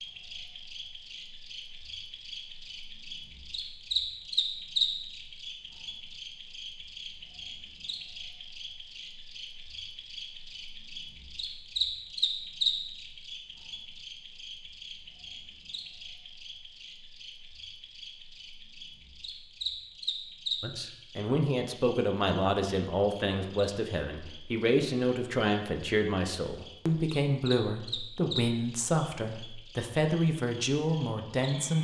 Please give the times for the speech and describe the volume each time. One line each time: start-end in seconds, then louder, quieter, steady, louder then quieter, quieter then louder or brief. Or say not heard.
20.6-31.7 steady.